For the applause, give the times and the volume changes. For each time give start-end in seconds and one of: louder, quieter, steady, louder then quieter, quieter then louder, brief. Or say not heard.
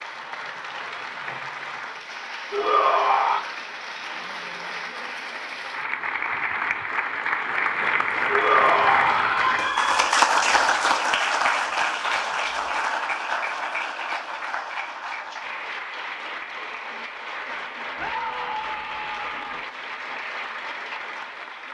0.0-21.6 louder then quieter.